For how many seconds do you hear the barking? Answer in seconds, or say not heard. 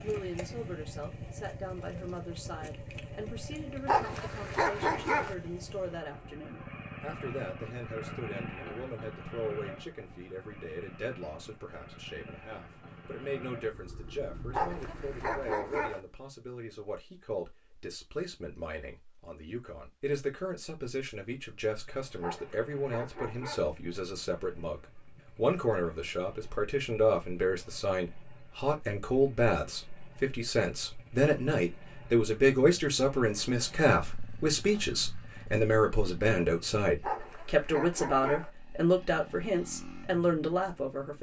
6 s.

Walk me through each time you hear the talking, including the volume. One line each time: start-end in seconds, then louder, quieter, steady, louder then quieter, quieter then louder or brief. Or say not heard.
0.0-41.1 louder.